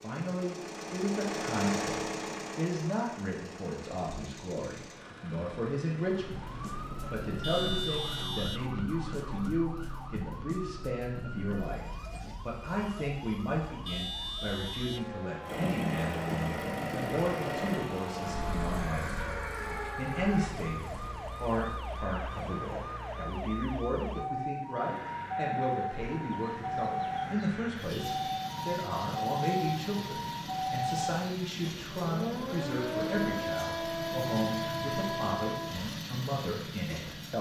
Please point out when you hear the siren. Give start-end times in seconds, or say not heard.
6.0-36.0.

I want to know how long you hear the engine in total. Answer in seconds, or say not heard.
29 s.